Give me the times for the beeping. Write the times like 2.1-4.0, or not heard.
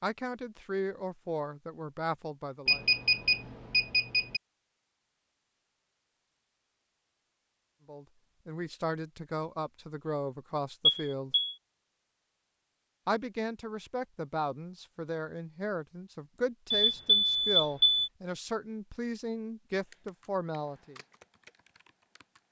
2.6-4.4, 10.8-11.6, 16.7-18.1.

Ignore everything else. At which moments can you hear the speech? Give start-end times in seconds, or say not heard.
0.0-2.9, 7.8-11.3, 13.1-20.9.